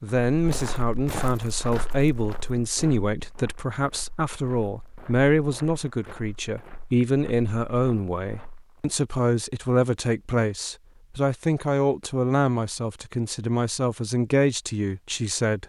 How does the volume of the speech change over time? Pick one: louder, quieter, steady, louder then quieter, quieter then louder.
steady.